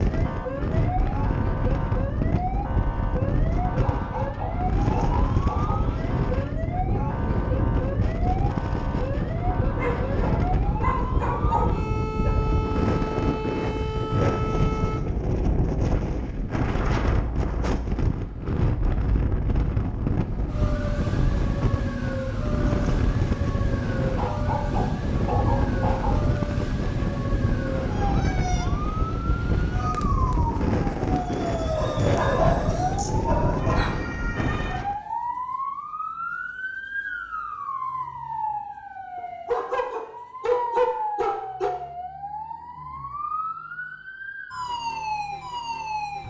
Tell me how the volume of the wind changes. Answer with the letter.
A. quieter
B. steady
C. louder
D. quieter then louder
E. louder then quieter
B.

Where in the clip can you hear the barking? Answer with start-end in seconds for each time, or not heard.
4.0-5.8, 9.8-12.3, 24.1-26.1, 31.7-33.9, 39.1-41.7.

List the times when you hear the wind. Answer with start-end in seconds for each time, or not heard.
0.0-35.0.